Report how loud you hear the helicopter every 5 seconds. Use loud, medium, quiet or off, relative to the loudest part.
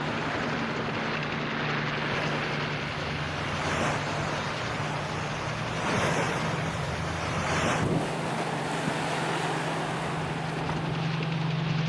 loud, medium, loud.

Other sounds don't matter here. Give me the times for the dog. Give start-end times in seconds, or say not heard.
not heard.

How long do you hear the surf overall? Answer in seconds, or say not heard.
12 s.